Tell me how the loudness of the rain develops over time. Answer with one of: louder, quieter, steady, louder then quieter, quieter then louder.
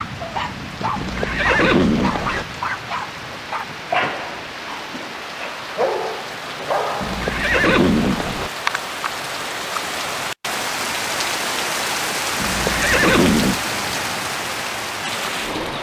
louder.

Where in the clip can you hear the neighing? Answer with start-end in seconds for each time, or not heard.
0.9-2.5, 7.0-8.5, 12.4-13.6.